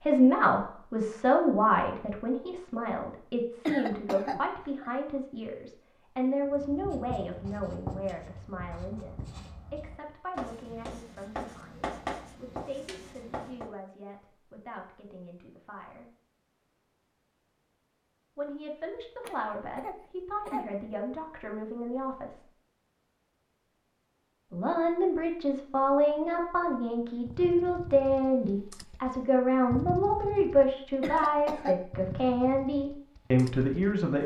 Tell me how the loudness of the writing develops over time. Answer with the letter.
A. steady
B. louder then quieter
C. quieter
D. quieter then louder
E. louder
D.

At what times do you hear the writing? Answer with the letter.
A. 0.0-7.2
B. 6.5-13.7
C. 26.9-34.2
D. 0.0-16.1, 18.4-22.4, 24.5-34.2
B.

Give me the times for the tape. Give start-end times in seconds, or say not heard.
not heard.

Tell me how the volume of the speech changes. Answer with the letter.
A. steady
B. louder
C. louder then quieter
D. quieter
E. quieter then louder
E.